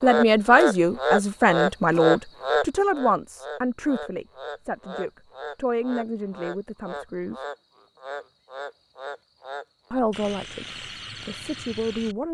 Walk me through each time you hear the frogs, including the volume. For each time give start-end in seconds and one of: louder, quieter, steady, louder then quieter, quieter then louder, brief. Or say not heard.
0.0-12.2 quieter.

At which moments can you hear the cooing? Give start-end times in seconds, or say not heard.
not heard.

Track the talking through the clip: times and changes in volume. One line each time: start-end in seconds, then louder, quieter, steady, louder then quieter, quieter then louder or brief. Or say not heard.
0.0-7.5 quieter
9.9-12.2 brief.